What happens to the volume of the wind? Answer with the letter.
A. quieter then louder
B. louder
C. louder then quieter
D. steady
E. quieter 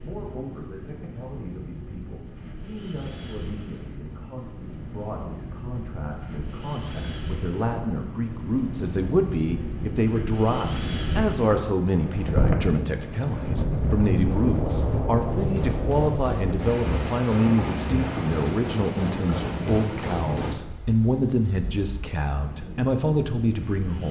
C.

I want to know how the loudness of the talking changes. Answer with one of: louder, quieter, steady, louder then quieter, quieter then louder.
louder.